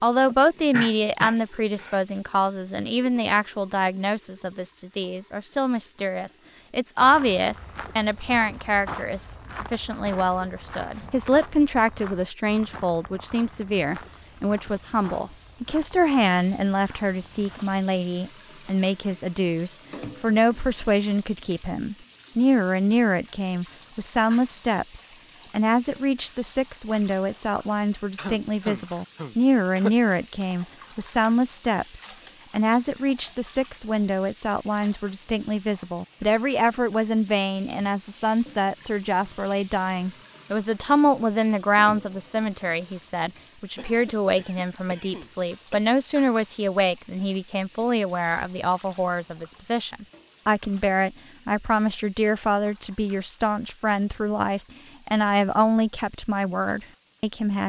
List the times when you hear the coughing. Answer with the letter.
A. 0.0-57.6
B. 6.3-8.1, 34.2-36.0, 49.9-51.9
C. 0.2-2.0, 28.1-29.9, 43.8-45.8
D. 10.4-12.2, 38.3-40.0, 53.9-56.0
C.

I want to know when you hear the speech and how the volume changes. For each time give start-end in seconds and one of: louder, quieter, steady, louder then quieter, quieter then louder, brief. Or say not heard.
0.0-57.6 steady.